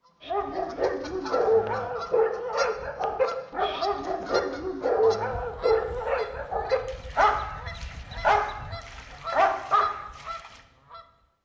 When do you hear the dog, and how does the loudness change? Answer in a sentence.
The dog can be heard from 0.2 to 10.6 s, at a steady volume.